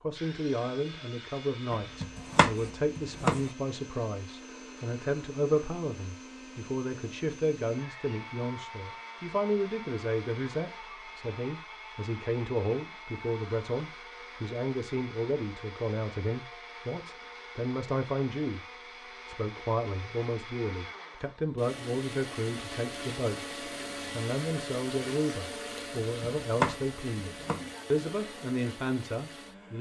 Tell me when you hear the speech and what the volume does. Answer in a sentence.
The speech can be heard from 0.0 to 18.6 s, at a steady volume; and from 19.2 to 29.7 s, at a steady volume.